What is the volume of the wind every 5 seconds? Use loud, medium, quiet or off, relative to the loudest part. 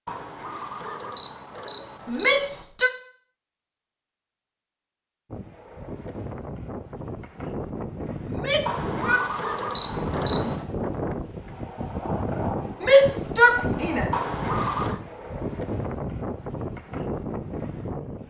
off, medium, loud, loud.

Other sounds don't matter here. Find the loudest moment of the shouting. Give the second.
13 s.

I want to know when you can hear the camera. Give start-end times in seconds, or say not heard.
0.1-2.6, 8.7-10.7, 14.1-15.0.